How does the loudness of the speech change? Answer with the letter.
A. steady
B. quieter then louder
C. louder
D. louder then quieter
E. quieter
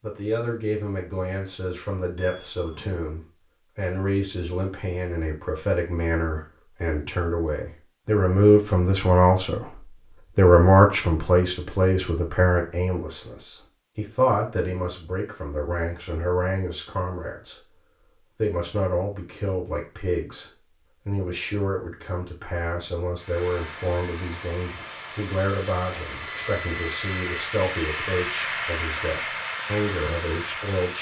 D.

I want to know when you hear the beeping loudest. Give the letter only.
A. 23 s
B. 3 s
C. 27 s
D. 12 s
C.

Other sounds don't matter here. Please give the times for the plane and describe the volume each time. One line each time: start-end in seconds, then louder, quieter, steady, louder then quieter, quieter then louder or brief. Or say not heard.
23.1-30.9 louder.